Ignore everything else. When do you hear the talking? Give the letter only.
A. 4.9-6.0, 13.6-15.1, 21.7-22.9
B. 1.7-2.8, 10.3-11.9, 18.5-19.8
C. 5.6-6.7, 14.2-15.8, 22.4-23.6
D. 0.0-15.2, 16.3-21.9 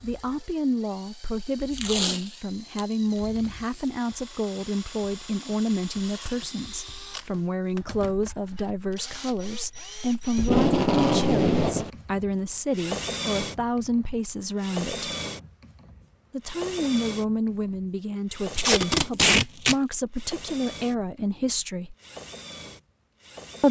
D.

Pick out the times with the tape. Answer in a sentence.
The tape can be heard from 1.7 to 2.8 s, from 10.3 to 11.9 s and from 18.5 to 19.8 s.